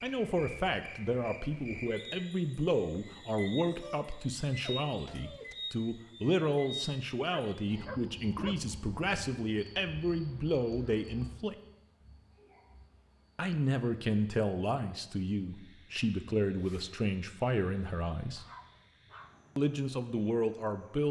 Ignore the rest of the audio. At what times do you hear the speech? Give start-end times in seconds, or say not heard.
0.0-11.6, 13.3-18.4, 19.6-21.0.